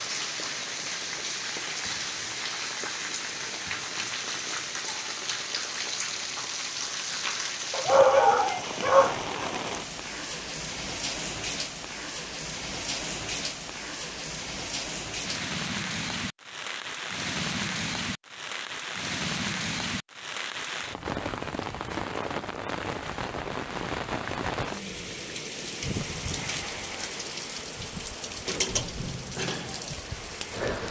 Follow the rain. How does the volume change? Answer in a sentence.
The volume of the rain stays about the same.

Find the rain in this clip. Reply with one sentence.
You can hear the rain from 0.0 to 30.8 s.